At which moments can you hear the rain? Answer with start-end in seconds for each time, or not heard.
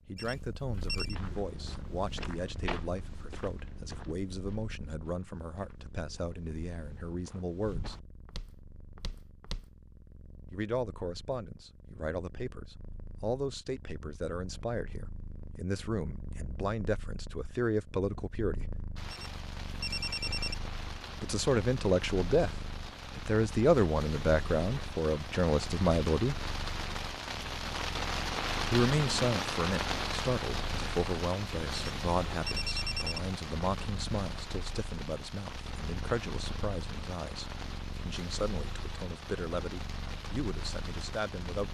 18.9-41.6.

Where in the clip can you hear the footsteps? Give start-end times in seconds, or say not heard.
1.0-9.7.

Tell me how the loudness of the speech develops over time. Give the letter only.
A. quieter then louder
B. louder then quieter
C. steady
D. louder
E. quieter
B.